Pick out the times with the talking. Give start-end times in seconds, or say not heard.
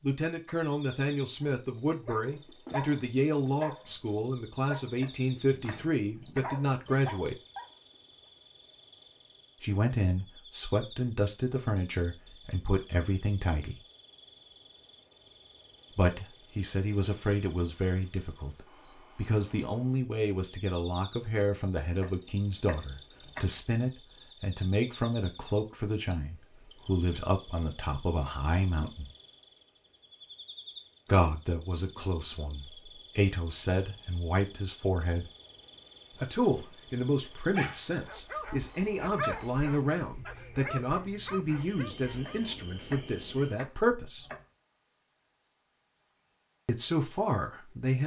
0.0-7.4, 9.6-13.8, 15.9-29.1, 31.1-35.3, 36.1-44.2, 46.6-48.0.